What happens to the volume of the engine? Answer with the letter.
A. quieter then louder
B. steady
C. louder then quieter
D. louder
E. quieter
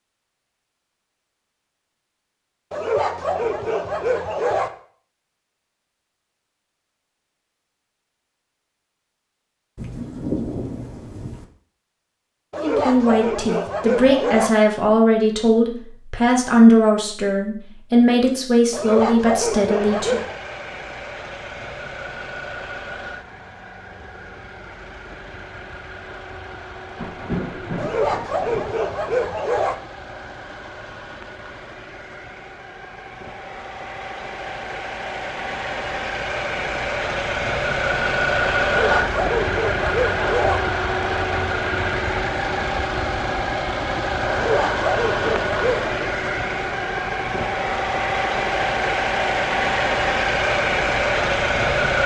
D.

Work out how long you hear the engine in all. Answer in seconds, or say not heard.
32 s.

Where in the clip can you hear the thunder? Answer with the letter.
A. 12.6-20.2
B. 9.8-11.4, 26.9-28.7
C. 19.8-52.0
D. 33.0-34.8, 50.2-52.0
B.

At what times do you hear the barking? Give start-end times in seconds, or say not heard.
2.7-4.7, 12.5-14.5, 18.7-20.4, 27.8-29.8, 38.6-40.6, 44.3-46.1.